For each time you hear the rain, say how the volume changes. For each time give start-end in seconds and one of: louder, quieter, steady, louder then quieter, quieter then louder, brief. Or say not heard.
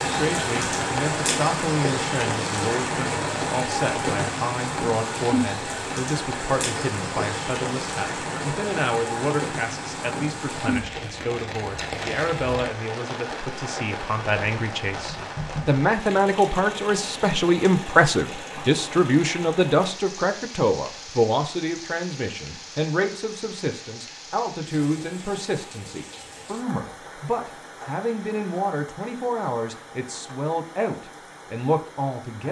0.0-32.4 quieter.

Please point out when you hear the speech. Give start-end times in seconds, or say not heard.
0.1-32.4.